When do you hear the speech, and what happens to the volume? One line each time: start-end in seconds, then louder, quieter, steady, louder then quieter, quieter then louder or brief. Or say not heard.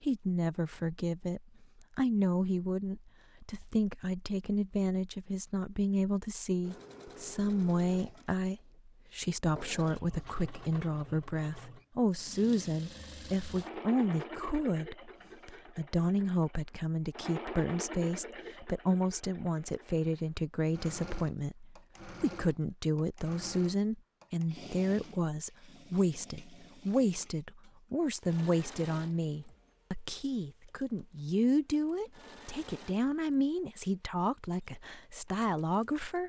0.0-36.2 steady.